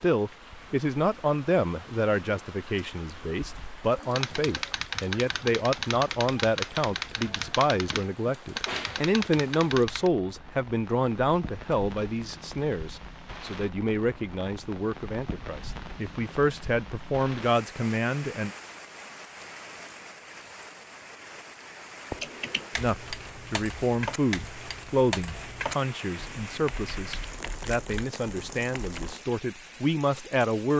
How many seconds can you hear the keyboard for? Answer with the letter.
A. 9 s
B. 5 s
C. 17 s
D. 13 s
D.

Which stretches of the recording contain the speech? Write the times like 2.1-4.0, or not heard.
0.0-18.5, 22.8-30.7.